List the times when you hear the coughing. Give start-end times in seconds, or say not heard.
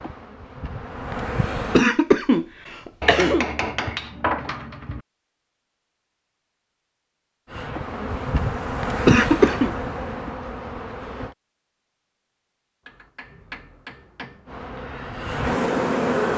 1.7-3.5, 9.1-9.8.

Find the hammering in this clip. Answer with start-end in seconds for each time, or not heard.
3.0-5.0, 12.8-14.4.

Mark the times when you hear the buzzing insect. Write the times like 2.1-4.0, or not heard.
0.0-1.9, 7.5-11.3, 14.4-16.3.